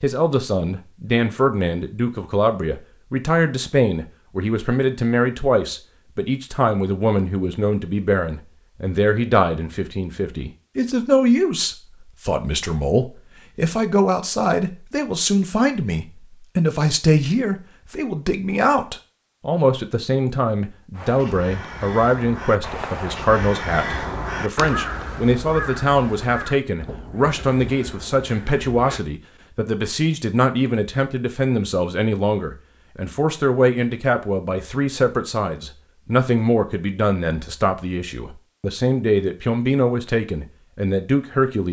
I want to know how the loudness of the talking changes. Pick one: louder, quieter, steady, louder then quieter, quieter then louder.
steady.